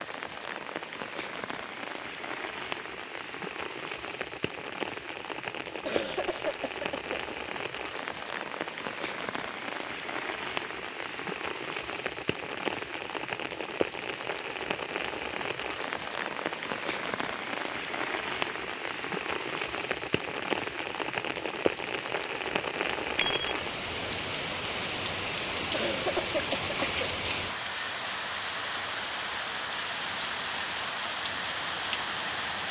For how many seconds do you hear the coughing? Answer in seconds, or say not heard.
3 s.